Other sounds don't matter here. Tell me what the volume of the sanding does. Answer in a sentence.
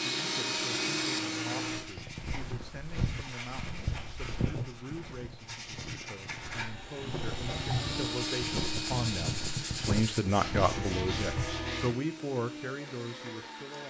The volume of the sanding goes up.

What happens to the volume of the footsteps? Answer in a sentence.
The loudness of the footsteps goes down, then up.